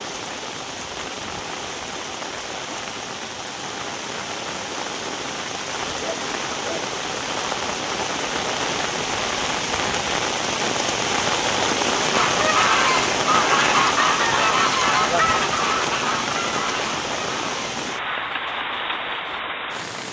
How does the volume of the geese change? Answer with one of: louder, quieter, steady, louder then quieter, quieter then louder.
quieter.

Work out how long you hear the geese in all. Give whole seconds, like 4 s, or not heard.
7 s.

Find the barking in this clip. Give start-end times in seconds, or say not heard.
6.0-6.8.